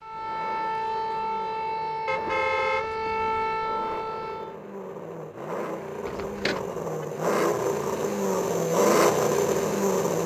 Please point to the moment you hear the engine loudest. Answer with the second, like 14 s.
9 s.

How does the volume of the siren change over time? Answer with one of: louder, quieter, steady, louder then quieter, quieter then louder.
steady.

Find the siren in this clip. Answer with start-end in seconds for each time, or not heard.
0.0-4.6.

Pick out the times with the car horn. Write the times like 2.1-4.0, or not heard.
2.0-3.3, 6.0-7.0.